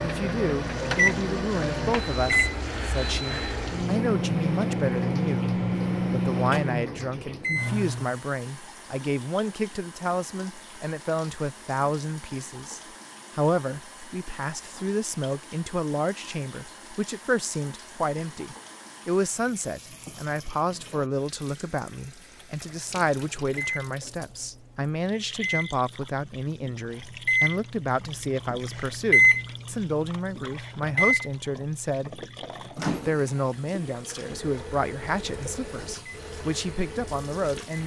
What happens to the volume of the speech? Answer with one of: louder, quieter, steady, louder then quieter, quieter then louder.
steady.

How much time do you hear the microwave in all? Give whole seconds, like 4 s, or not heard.
23 s.